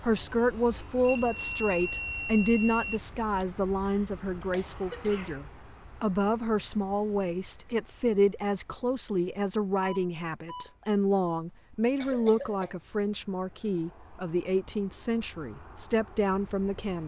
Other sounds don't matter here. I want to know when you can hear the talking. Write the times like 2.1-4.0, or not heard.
0.0-17.0.